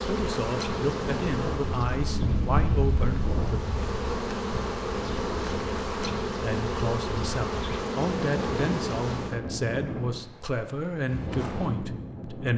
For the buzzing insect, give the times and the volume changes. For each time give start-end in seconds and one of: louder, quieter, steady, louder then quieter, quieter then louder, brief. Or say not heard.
0.0-9.4 quieter then louder.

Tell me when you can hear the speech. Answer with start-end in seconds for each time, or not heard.
0.0-3.6, 6.2-12.5.